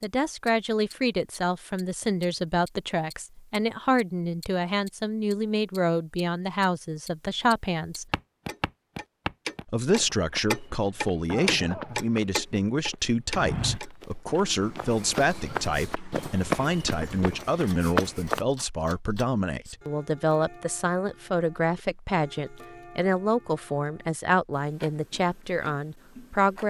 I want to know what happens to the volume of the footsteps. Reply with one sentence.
The volume of the footsteps goes down, then up.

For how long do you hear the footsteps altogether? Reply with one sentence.
The footsteps can be heard for 10 seconds in total.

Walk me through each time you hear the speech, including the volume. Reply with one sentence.
The speech can be heard from 0.0 to 8.1 s, at a steady volume; and from 9.7 to 26.6 s, at a steady volume.